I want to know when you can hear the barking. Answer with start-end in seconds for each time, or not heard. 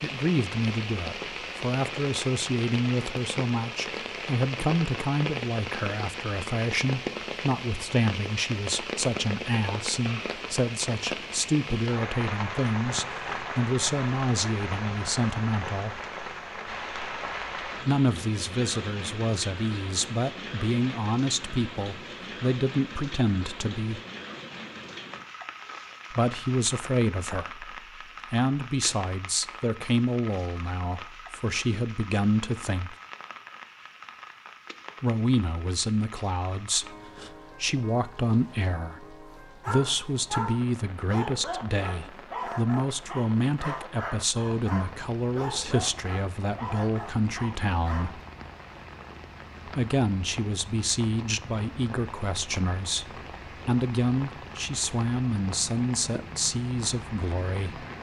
39.6-48.1.